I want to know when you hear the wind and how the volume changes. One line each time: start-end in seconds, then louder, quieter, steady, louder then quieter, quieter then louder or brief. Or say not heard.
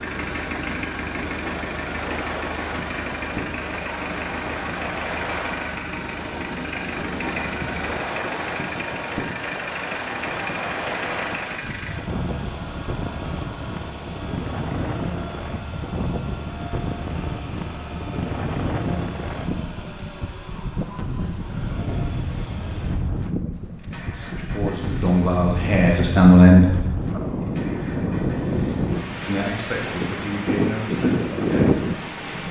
0.0-32.4 louder.